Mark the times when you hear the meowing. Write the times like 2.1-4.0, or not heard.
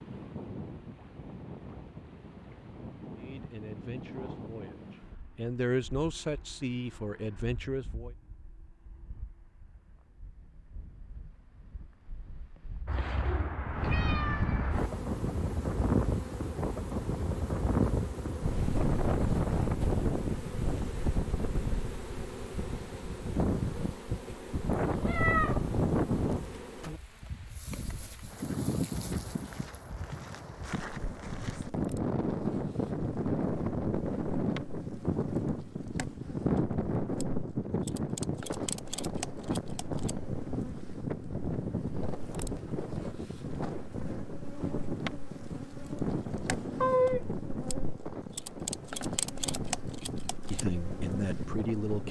12.8-14.9, 25.0-25.6, 46.8-47.3.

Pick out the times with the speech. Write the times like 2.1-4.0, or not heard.
3.1-8.1, 50.5-52.0.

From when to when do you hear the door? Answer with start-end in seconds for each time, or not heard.
not heard.